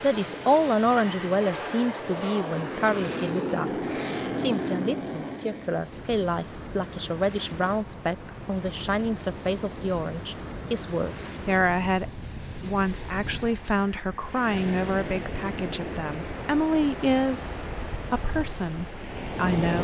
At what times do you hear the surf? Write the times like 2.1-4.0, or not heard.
5.5-19.7.